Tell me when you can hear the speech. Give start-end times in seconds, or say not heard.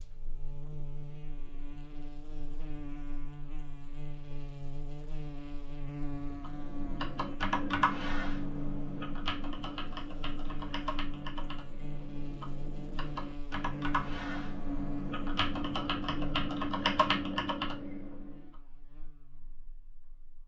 not heard.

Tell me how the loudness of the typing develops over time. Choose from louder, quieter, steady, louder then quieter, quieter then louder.
quieter then louder.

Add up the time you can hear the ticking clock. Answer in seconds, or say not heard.
not heard.